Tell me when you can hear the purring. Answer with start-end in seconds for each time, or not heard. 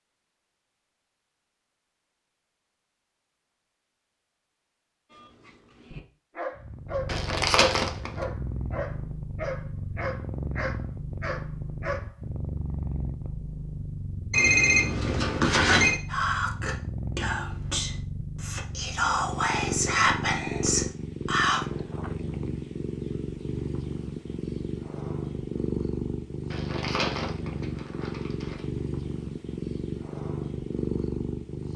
6.5-31.7.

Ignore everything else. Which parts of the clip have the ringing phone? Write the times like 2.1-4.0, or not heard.
14.3-16.0.